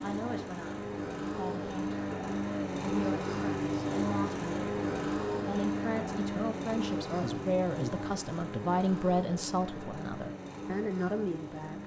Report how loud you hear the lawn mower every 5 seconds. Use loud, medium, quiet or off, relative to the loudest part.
loud, loud, medium.